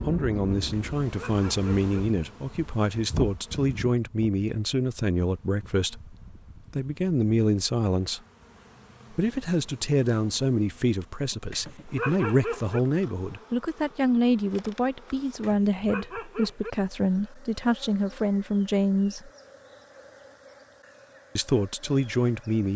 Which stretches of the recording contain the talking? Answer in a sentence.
You can hear the talking from 0.0 to 8.2 s, from 9.1 to 19.3 s and from 21.4 to 22.7 s.